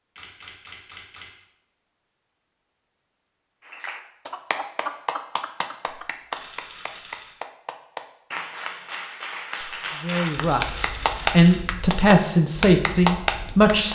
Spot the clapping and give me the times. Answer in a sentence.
You can hear the clapping from 3.6 to 13.9 s.